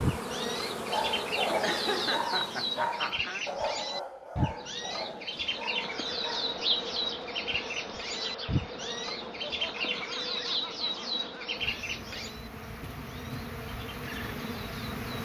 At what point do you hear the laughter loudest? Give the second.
2 s.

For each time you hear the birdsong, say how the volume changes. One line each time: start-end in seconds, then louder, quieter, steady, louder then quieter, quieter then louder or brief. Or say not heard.
0.0-15.0 quieter.